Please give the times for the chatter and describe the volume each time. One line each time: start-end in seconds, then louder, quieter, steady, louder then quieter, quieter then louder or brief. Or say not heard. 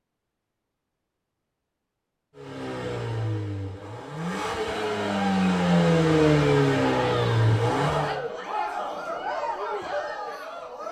4.7-10.8 steady.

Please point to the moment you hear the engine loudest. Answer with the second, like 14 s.
6 s.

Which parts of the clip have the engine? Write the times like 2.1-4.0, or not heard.
2.4-8.2.